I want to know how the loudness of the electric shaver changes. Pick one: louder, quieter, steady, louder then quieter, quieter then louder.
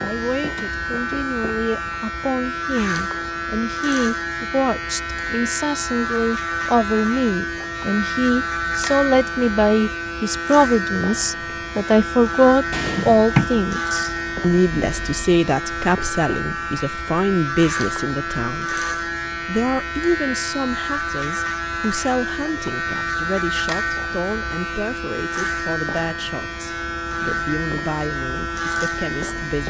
steady.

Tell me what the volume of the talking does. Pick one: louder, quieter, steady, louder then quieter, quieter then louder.
louder then quieter.